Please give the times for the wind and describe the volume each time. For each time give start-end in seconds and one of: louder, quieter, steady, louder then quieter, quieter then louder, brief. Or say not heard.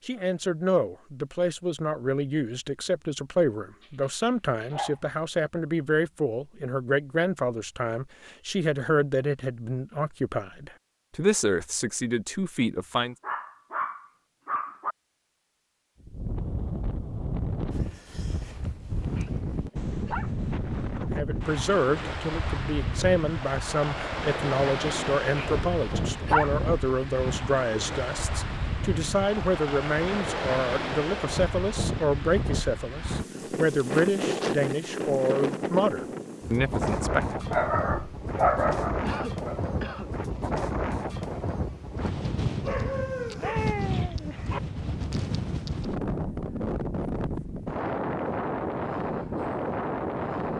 16.0-50.5 steady.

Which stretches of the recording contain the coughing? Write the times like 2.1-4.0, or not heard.
39.0-40.1.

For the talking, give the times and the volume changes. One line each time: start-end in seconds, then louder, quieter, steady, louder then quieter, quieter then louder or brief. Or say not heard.
0.1-13.2 steady
21.1-37.4 steady.